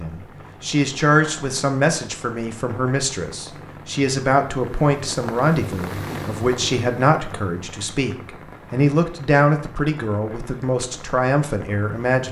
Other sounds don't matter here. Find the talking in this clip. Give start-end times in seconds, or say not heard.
0.0-12.2.